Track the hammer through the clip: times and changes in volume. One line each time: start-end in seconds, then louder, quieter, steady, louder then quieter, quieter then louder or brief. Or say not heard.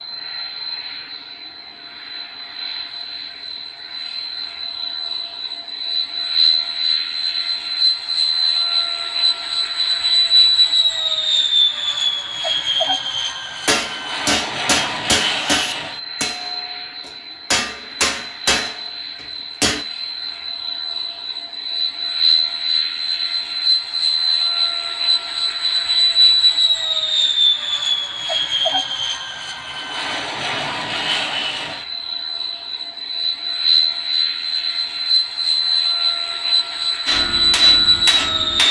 13.7-19.9 quieter then louder
37.0-38.6 brief.